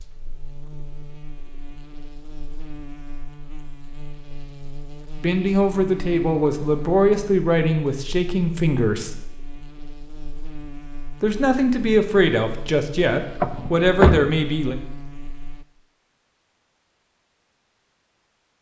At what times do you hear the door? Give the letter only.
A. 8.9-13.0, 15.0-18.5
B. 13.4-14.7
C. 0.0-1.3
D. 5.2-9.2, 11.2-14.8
B.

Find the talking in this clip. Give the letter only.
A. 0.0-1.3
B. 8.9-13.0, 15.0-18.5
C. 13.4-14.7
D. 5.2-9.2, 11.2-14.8
D.